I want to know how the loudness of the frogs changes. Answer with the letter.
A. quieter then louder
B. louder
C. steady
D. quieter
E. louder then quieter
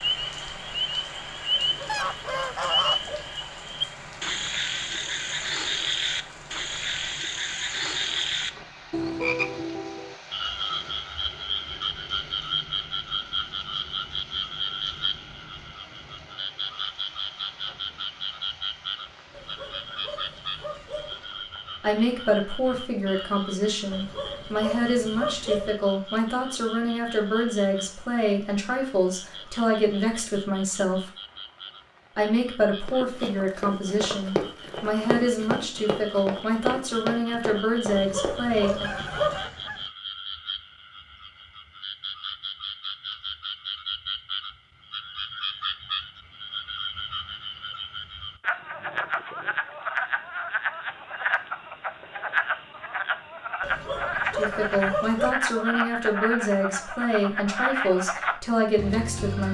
A.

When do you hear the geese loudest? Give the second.
3 s.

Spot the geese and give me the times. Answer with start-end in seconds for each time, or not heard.
1.9-3.5, 38.5-39.9.